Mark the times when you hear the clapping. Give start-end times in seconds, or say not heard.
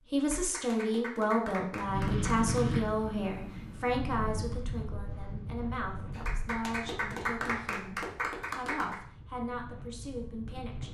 0.1-2.9, 6.1-9.0.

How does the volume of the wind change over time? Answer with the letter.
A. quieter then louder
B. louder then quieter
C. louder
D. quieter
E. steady
D.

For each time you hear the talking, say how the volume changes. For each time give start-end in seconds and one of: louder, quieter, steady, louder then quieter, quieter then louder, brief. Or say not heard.
0.1-10.8 quieter.